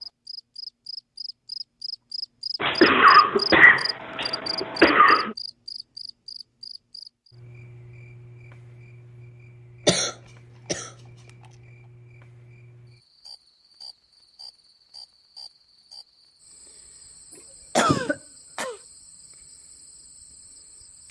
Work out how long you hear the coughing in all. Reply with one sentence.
You can hear the coughing for 5 seconds altogether.